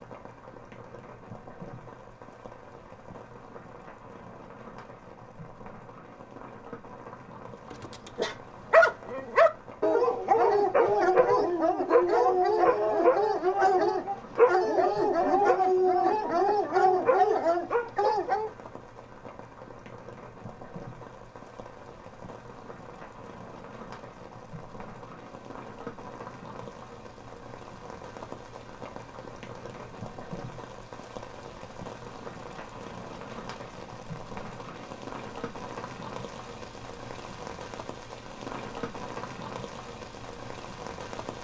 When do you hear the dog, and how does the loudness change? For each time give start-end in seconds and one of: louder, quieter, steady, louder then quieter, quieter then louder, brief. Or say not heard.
7.7-18.5 steady.